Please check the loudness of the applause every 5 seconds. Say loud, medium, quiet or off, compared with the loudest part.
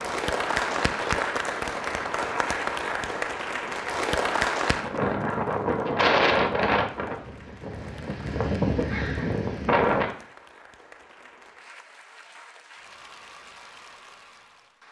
loud, quiet, quiet.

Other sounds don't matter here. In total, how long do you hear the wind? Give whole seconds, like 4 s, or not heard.
10 s.